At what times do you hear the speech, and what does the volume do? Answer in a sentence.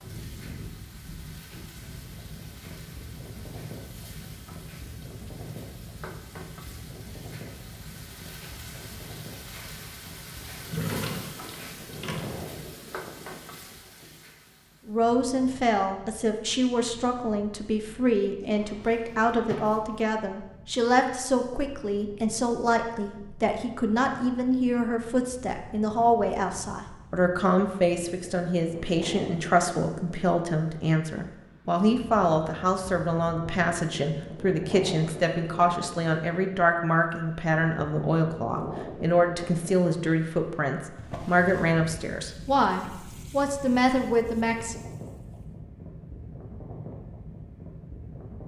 You can hear the speech from 14.8 to 44.8 s, at a steady volume.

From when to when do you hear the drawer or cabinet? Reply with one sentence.
The drawer or cabinet can be heard from 10.6 to 12.7 s, from 18.5 to 20.0 s and from 41.0 to 41.8 s.